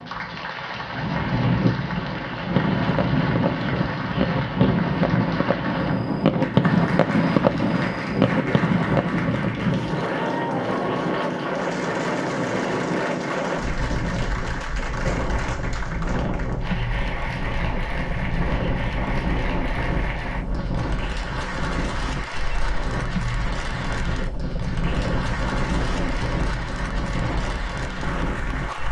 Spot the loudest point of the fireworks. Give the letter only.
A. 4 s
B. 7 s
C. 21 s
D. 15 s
B.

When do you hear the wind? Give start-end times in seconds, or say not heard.
0.0-28.8.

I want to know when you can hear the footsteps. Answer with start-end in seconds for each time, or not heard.
not heard.